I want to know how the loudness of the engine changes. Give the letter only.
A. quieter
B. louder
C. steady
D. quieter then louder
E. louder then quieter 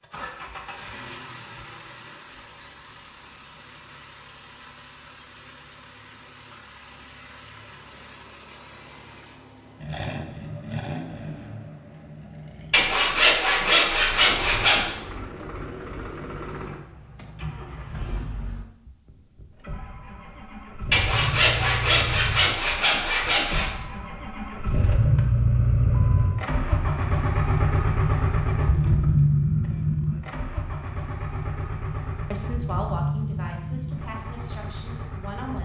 B.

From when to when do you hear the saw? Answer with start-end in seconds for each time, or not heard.
12.7-14.9, 20.9-23.8.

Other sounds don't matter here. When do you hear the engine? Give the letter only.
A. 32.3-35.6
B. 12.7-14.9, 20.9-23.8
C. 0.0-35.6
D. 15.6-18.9
C.